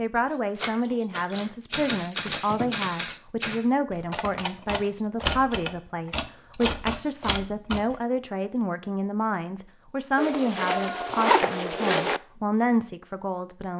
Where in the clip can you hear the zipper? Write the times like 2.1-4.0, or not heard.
10.2-12.2.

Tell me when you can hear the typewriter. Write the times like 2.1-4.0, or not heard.
0.6-8.0.